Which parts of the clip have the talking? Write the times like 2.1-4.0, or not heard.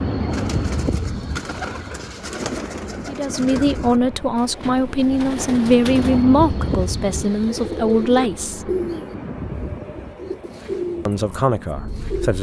3.0-8.7, 11.1-12.3.